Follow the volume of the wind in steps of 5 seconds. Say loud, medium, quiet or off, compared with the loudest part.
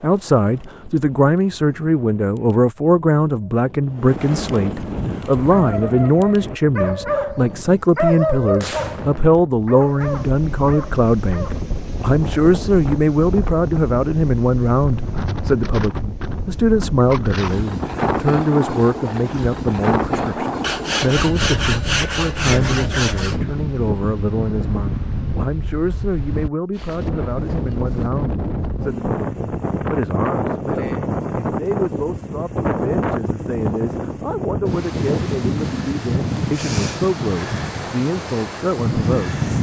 medium, medium, medium, loud, loud, loud, loud, loud.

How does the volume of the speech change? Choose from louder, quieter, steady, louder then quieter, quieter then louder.
quieter.